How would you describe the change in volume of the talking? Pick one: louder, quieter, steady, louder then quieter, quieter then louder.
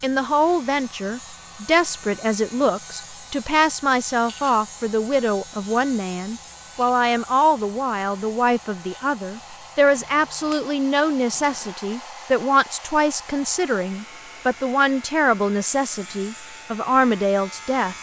steady.